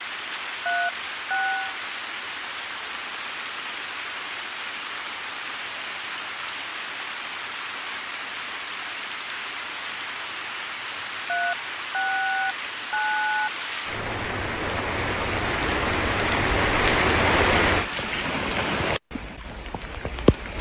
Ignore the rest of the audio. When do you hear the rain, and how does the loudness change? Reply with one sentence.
You can hear the rain from 0.0 to 20.5 s, getting louder.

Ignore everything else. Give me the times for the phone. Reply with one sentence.
The phone can be heard from 0.7 to 1.8 s and from 11.2 to 13.5 s.